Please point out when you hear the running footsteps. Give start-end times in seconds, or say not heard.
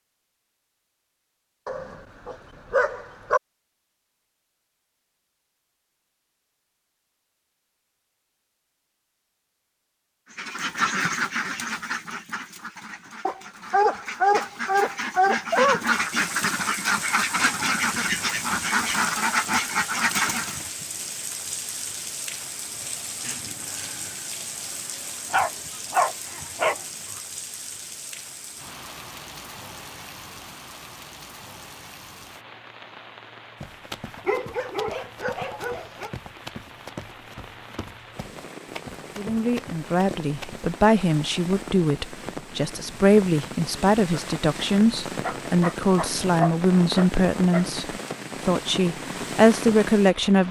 33.5-40.8.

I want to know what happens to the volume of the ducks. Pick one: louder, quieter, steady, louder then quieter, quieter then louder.
quieter then louder.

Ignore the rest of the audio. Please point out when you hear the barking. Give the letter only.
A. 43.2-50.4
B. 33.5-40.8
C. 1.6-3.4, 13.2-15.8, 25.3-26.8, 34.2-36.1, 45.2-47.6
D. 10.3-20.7
C.